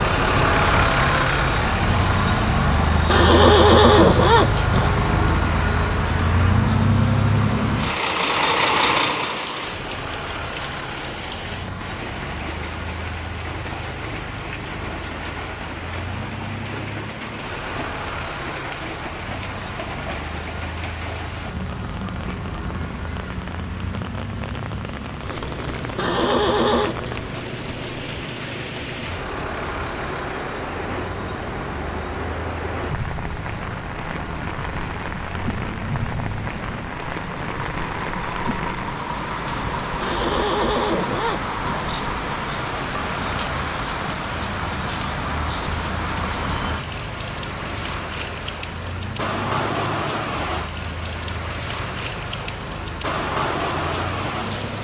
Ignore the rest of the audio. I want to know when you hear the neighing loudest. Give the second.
4 s.